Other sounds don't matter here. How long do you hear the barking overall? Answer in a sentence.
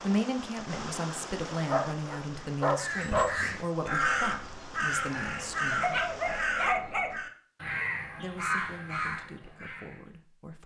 The barking can be heard for 3 seconds in total.